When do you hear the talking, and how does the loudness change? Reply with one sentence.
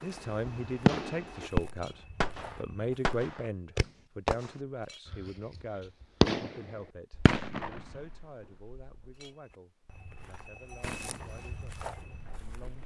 The talking can be heard from 0.0 to 12.8 s, getting quieter.